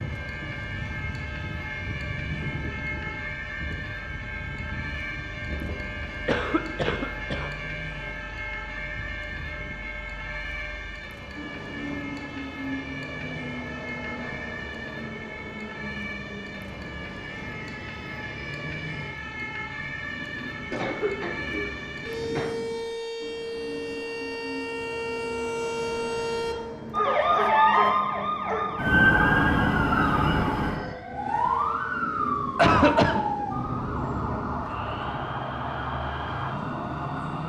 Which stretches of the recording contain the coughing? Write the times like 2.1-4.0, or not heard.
6.2-7.5, 20.7-22.6, 32.5-33.2.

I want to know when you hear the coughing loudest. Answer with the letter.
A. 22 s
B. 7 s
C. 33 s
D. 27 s
C.